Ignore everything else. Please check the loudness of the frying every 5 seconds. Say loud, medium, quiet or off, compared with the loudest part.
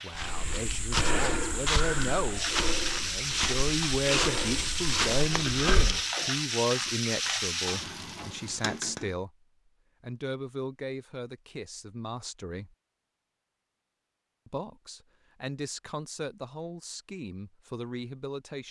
loud, loud, off, off.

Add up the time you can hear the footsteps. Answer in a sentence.
The footsteps can be heard for 6 seconds in total.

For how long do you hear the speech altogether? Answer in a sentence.
The speech can be heard for 16 seconds in total.